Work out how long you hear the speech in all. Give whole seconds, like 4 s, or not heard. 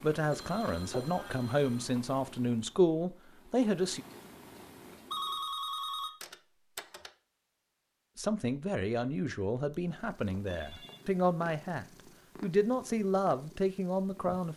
10 s.